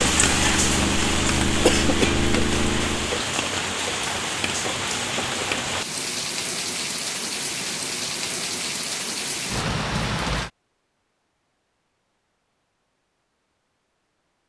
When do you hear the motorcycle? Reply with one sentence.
The motorcycle can be heard from 0.0 to 3.2 s.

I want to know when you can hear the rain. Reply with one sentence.
The rain can be heard from 0.0 to 10.5 s.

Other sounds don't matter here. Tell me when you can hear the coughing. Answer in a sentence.
The coughing can be heard from 1.6 to 2.1 s.